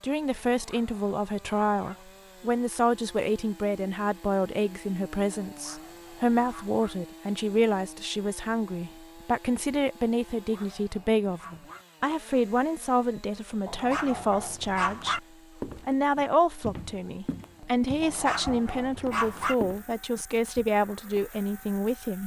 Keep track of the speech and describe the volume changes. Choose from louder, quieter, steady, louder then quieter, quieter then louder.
steady.